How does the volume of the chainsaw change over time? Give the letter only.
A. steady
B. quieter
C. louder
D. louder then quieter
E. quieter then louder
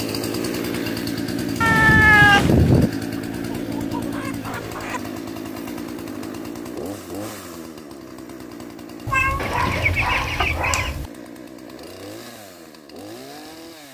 B.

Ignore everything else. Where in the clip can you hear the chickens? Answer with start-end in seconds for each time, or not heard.
3.1-5.0, 9.3-11.0.